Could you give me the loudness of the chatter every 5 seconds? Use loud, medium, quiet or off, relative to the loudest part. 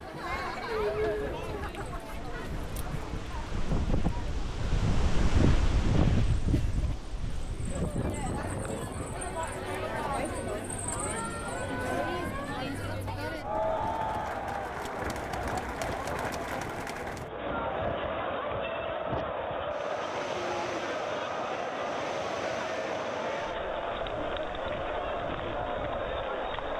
loud, medium, loud, loud, loud, loud.